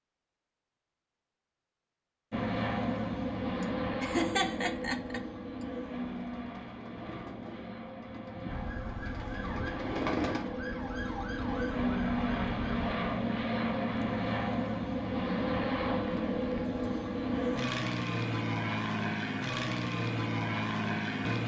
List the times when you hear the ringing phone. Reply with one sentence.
You can't hear the ringing phone here.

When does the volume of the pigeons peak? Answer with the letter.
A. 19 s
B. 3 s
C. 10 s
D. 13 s
C.